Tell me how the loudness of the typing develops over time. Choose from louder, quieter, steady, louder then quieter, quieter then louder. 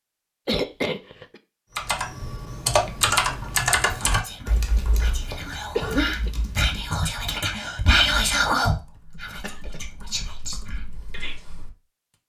quieter.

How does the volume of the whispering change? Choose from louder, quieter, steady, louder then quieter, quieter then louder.
louder then quieter.